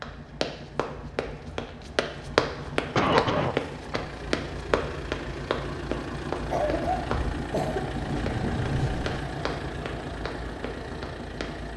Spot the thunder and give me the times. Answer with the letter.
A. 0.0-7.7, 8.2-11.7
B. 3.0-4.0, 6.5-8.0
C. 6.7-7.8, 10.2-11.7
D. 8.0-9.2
D.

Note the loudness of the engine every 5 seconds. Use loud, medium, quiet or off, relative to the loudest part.
medium, loud, loud.